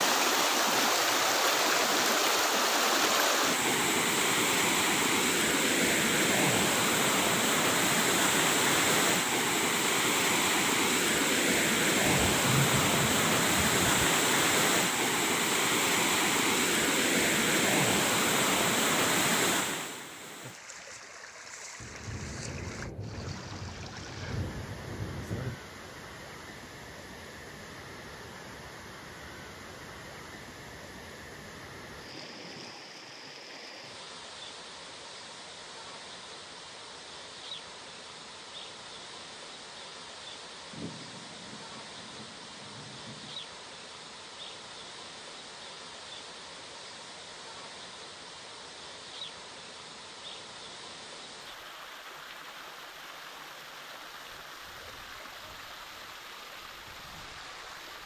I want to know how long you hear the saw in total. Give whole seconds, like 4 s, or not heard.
not heard.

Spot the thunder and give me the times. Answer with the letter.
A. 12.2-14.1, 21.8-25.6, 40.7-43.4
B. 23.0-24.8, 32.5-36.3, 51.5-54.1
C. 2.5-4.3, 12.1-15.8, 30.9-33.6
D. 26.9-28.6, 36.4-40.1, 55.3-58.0
A.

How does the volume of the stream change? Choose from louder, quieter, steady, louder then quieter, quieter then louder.
quieter.